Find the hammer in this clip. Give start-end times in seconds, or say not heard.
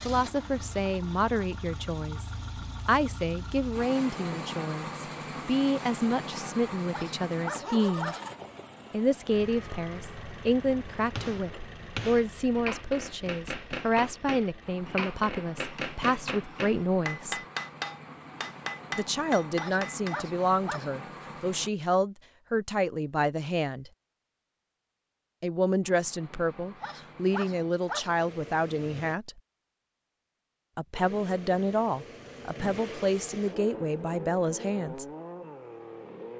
11.2-20.2.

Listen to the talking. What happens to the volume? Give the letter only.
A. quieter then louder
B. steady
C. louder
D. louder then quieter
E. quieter
B.